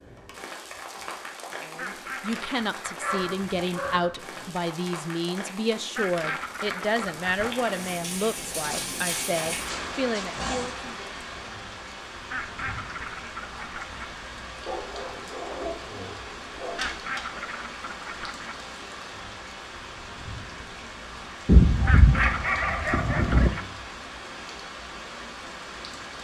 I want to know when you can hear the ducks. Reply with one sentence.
You can hear the ducks from 1.8 to 3.6 s, from 6.0 to 7.8 s, from 12.3 to 14.2 s, from 16.8 to 18.6 s and from 21.9 to 23.7 s.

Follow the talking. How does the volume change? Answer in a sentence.
The volume of the talking stays about the same.